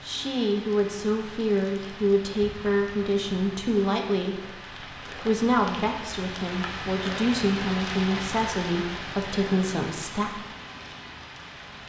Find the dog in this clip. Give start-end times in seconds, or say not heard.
not heard.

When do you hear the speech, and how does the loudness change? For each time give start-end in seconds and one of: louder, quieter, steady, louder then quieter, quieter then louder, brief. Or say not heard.
0.0-4.5 steady
5.1-10.4 steady.